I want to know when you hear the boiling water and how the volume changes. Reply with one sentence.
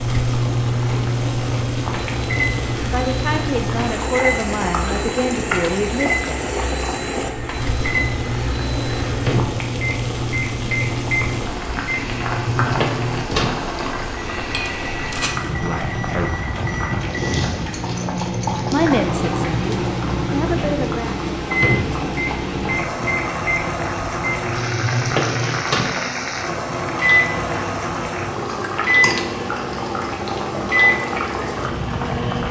You can hear the boiling water from 0.0 to 32.4 s, at a steady volume.